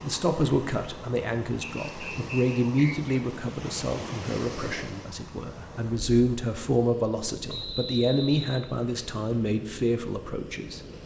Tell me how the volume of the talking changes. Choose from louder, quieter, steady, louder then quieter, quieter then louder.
steady.